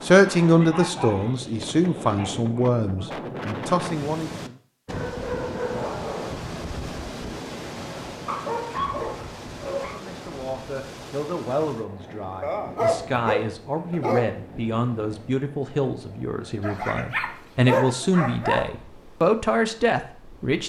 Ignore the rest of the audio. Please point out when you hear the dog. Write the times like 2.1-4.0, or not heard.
0.4-2.4, 4.8-6.4, 8.2-9.9, 12.4-14.3, 16.6-18.7.